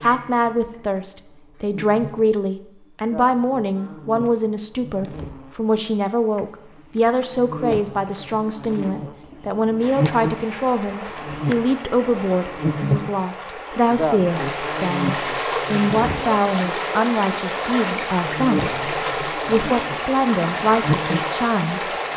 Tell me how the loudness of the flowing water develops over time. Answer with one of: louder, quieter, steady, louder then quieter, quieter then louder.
louder.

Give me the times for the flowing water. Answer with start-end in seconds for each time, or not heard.
9.8-22.1.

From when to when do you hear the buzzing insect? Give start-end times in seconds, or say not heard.
0.0-22.1.